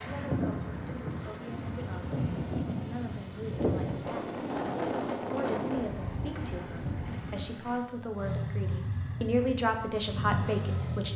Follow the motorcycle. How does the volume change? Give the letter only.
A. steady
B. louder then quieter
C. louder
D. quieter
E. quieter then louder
C.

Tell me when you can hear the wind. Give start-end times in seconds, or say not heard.
0.0-7.6.